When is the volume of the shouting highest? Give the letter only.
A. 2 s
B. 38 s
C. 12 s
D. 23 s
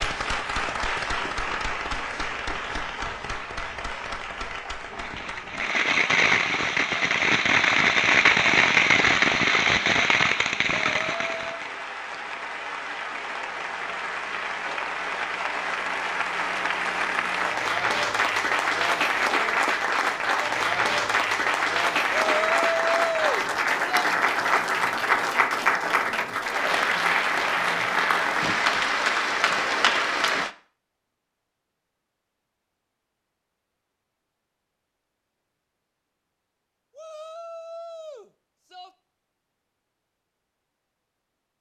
D.